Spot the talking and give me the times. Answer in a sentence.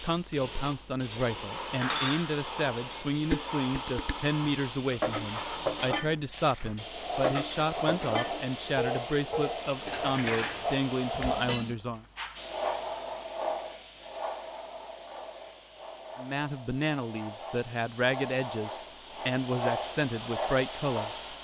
The talking can be heard from 0.0 to 12.1 s and from 16.1 to 21.2 s.